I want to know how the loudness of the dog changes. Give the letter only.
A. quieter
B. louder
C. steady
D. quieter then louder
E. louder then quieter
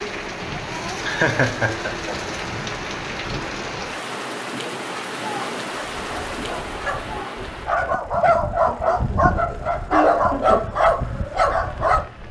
B.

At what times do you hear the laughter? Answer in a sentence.
You can hear the laughter from 1.0 to 2.2 s and from 8.7 to 10.7 s.